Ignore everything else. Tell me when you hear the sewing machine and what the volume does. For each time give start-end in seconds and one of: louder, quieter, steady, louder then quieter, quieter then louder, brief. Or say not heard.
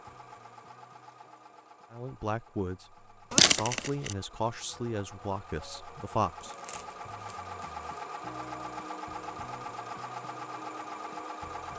0.0-11.7 louder.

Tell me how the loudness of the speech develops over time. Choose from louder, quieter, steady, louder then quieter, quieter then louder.
quieter.